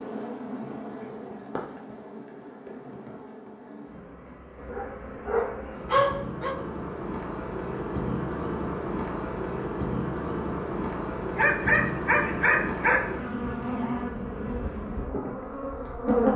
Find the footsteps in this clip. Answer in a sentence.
The footsteps can't be heard in this clip.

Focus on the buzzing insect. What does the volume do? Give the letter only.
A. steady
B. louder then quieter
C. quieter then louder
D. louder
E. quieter
D.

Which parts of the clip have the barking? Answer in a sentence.
You can hear the barking from 4.7 to 6.5 s and from 11.3 to 13.1 s.